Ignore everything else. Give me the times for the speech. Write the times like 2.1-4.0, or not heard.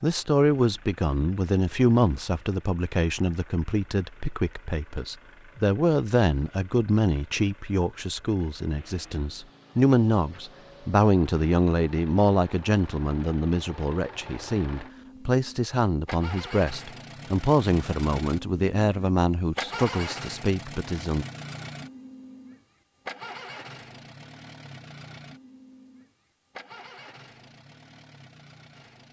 0.0-21.2.